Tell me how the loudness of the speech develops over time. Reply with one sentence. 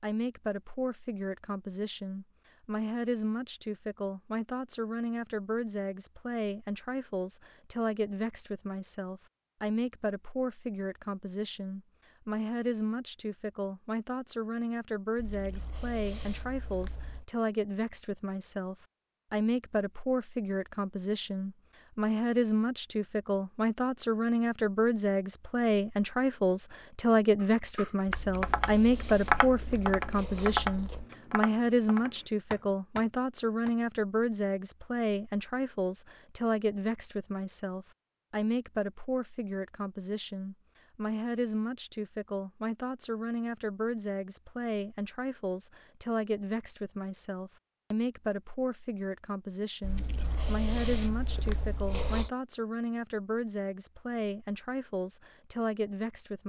The volume of the speech goes up, then down.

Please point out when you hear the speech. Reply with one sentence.
The speech can be heard from 0.0 to 56.4 s.